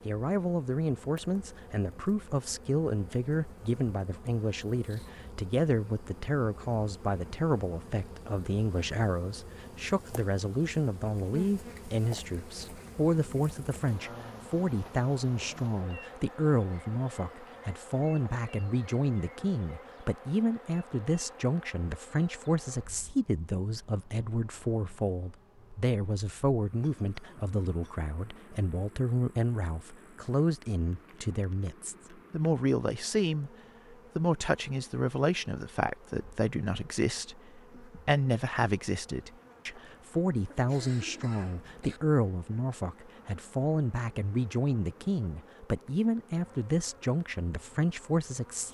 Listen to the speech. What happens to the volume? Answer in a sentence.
The volume of the speech stays about the same.